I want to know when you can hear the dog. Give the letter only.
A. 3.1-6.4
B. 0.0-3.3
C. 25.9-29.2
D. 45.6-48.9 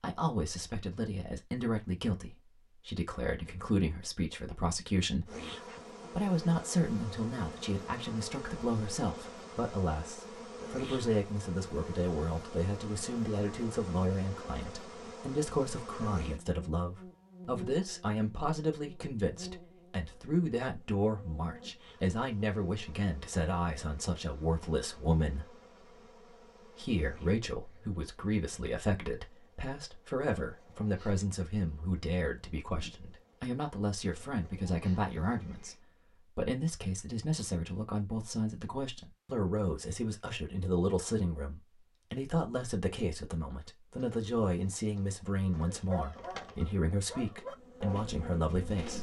D.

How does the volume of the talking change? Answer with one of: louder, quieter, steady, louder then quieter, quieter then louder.
steady.